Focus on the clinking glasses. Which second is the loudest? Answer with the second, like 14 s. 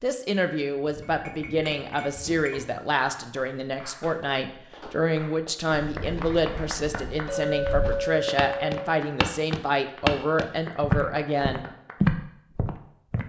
8 s.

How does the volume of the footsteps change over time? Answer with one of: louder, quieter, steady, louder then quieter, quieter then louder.
louder.